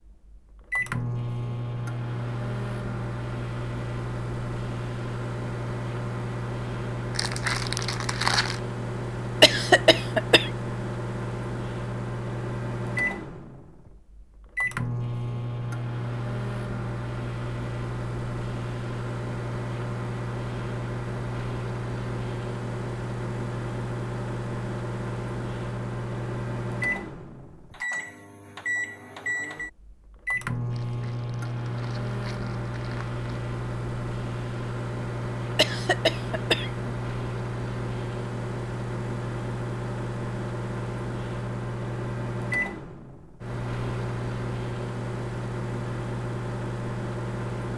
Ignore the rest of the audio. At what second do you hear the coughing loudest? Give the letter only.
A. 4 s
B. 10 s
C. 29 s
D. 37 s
B.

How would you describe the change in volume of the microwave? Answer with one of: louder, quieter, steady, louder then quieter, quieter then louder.
steady.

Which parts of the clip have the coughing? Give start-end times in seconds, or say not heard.
9.4-10.5, 35.5-36.9.